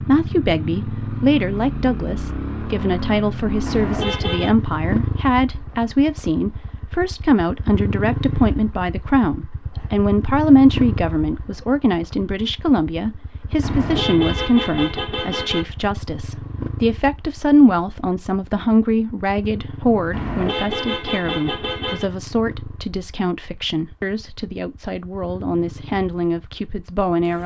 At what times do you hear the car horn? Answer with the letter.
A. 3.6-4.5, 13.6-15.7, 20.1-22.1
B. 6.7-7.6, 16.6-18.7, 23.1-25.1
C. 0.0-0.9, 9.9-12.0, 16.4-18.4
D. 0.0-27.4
A.